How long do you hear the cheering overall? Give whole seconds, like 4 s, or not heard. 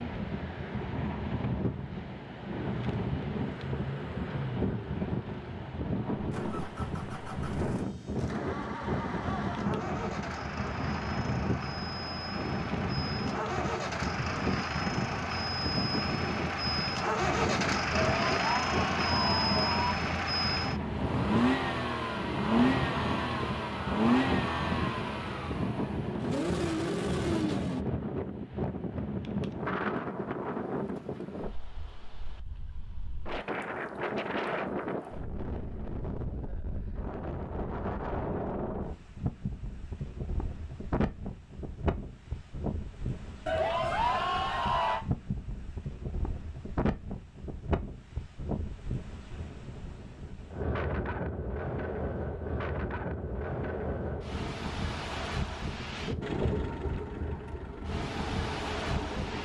4 s.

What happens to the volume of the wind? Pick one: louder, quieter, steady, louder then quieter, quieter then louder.
steady.